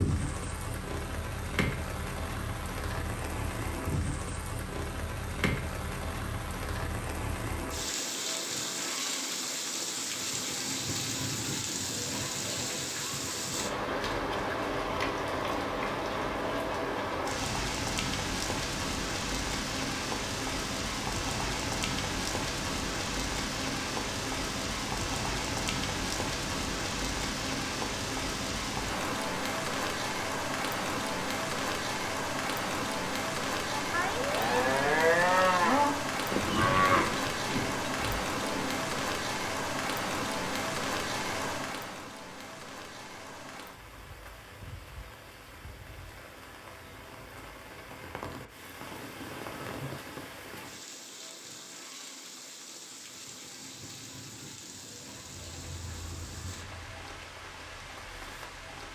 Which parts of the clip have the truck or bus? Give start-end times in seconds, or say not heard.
55.2-58.8.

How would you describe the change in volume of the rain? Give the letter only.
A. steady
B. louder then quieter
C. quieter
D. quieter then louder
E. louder
C.